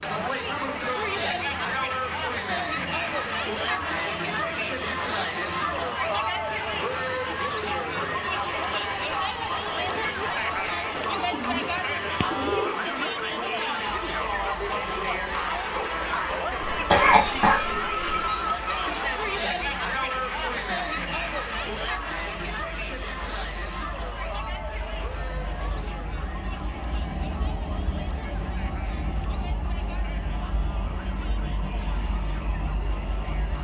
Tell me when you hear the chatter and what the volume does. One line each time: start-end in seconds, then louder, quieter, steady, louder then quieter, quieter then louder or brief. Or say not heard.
0.0-33.5 quieter.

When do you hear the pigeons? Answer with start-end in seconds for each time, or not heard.
11.2-12.9.